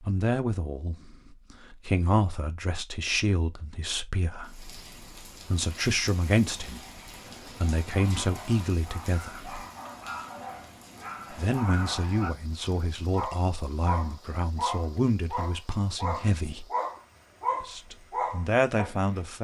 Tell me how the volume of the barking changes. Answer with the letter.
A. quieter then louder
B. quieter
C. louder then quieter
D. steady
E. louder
E.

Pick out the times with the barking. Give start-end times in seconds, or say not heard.
7.2-19.1.